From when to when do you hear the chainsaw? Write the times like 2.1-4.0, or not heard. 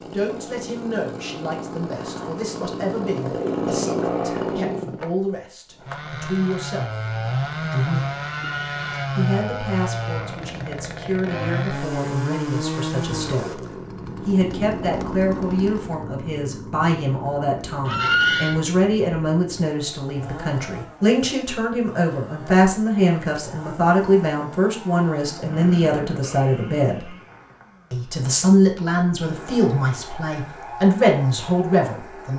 0.0-32.3.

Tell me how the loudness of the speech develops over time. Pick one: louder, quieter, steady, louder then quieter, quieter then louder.
louder.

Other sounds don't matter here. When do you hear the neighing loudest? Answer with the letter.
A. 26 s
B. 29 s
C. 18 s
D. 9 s
C.